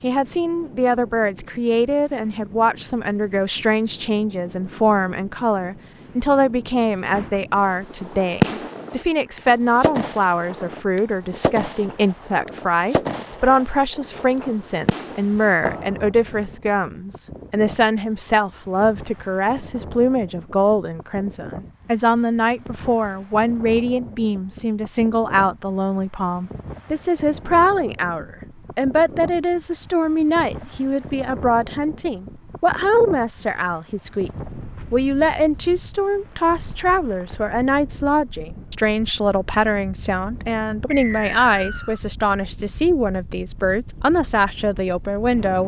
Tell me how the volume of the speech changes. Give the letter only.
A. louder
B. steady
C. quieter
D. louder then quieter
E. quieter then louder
B.